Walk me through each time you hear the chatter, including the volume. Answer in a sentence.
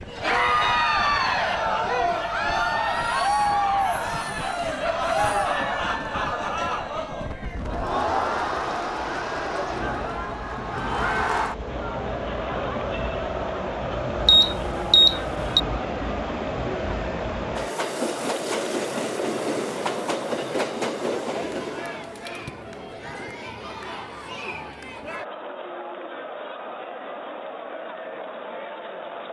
You can hear the chatter from 0.1 to 29.2 s, getting quieter.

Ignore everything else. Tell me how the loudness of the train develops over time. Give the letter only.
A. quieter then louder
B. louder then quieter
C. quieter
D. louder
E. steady
D.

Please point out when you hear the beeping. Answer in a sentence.
The beeping can be heard from 14.2 to 15.6 s.